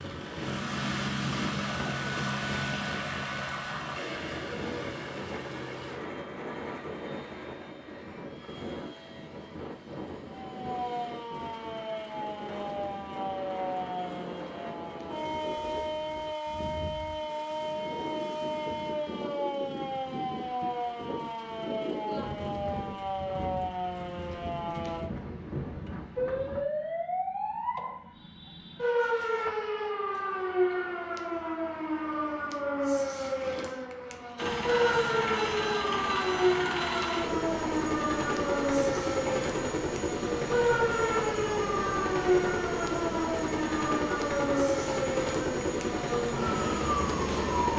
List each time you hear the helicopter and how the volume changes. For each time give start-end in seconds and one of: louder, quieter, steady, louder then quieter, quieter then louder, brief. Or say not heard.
0.0-15.2 quieter
34.4-47.7 steady.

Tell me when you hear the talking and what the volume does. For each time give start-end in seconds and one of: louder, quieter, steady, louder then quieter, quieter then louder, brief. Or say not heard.
not heard.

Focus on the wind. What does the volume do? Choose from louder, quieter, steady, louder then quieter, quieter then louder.
steady.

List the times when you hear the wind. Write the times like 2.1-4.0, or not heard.
0.0-26.6.